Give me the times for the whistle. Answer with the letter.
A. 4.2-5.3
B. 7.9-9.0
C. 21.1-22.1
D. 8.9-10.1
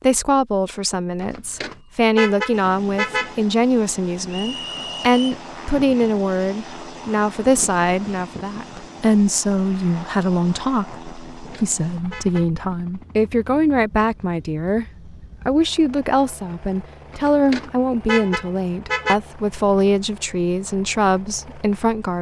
A.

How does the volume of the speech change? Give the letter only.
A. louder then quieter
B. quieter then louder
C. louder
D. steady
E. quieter
D.